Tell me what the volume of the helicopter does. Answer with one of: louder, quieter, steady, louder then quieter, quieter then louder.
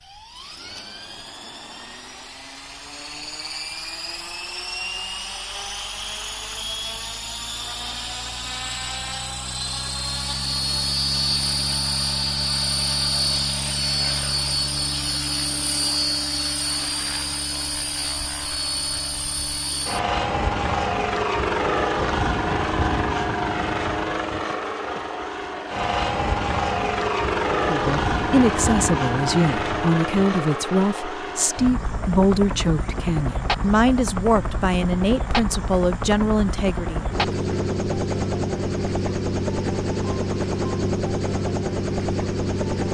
louder.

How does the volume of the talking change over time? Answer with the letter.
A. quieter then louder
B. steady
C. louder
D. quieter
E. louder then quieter
B.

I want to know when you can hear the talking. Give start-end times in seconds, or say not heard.
27.6-37.0.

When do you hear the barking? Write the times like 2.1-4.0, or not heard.
not heard.